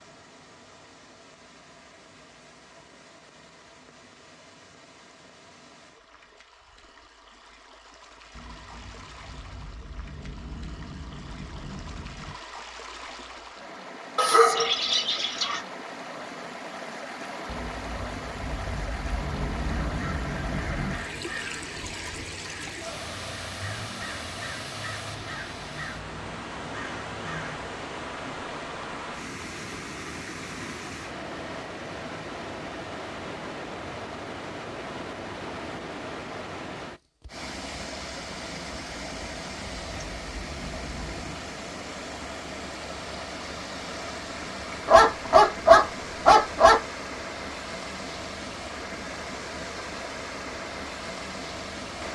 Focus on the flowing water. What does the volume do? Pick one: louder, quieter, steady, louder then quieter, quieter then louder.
louder.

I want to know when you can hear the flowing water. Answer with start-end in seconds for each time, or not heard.
0.0-52.0.